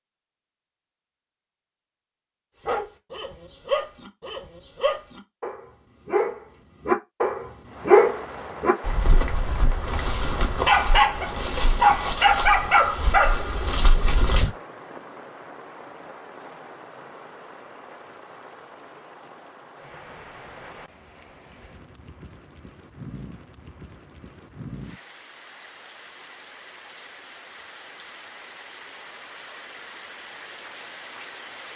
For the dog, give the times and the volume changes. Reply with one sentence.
The dog can be heard from 2.6 to 14.5 s, getting louder.